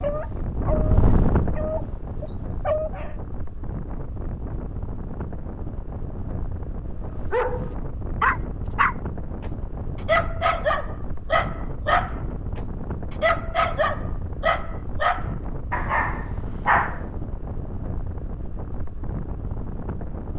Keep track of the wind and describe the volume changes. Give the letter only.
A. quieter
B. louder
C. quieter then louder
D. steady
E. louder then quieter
A.